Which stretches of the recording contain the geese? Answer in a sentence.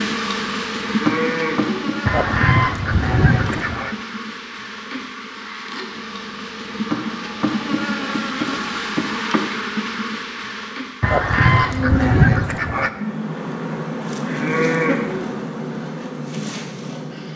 The geese can be heard from 2.0 to 4.0 s and from 11.0 to 12.9 s.